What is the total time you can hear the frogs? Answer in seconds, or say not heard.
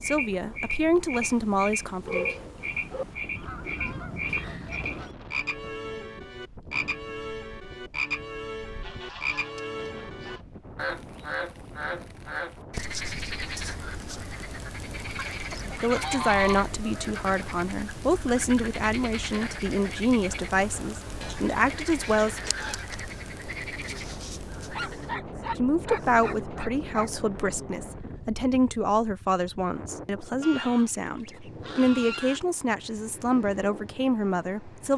25 s.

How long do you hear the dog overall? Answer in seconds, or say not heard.
4 s.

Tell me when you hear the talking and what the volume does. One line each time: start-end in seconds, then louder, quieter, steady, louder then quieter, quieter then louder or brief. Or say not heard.
0.0-2.2 brief
15.7-22.5 steady
25.6-34.9 steady.